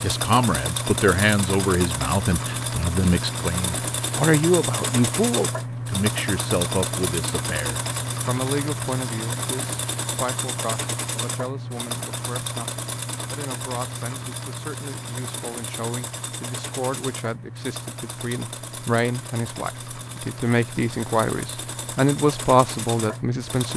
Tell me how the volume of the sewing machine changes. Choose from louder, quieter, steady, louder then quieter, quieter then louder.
quieter.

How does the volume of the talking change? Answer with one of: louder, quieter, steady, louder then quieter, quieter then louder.
quieter then louder.